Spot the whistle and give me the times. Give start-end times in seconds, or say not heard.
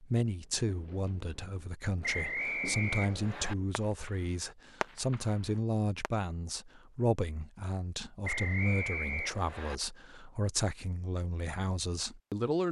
2.0-3.5, 8.2-9.8.